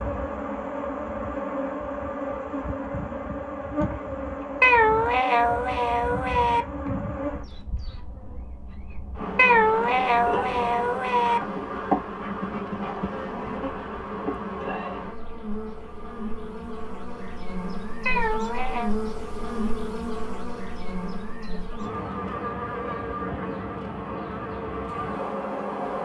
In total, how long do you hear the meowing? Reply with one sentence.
You can hear the meowing for 5 seconds altogether.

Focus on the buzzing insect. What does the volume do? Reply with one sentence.
The volume of the buzzing insect stays about the same.